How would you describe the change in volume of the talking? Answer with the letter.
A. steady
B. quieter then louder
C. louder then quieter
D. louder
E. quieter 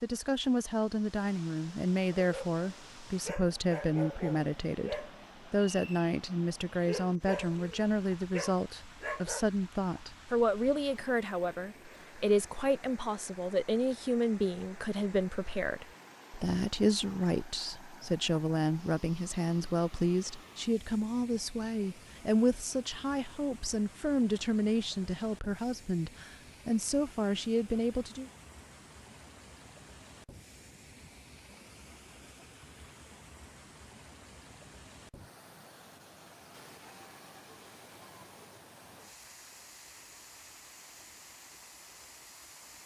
A.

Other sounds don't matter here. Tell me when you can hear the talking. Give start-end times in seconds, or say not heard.
0.0-28.3.